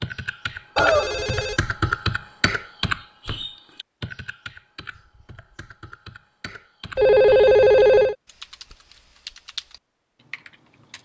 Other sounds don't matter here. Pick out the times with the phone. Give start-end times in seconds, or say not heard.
0.8-1.6, 7.0-8.2.